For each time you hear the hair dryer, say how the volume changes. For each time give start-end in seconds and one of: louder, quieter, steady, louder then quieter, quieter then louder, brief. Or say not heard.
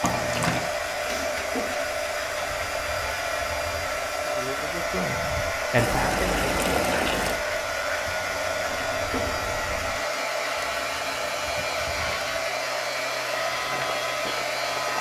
0.0-14.9 steady.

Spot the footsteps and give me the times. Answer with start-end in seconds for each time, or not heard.
13.3-14.9.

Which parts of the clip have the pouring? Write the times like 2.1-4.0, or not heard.
0.0-0.7, 5.8-7.4, 10.6-12.3.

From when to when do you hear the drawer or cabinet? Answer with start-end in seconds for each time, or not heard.
1.1-1.9, 8.6-9.4.